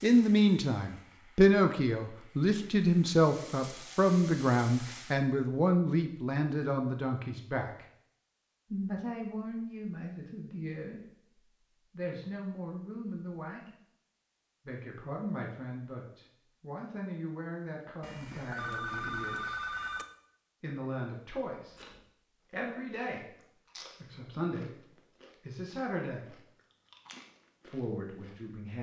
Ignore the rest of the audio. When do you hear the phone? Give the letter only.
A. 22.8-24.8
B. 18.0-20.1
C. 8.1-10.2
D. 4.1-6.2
B.